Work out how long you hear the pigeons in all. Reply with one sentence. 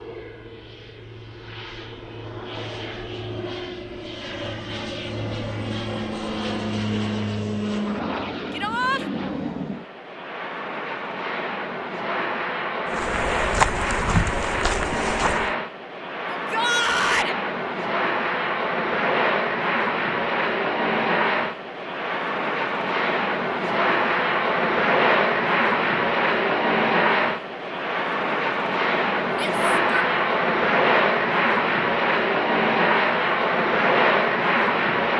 The pigeons can't be heard in this clip.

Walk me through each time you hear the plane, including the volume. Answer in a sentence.
The plane can be heard from 0.0 to 35.1 s, getting louder.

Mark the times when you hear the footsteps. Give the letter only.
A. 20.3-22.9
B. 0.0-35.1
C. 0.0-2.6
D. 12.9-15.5
D.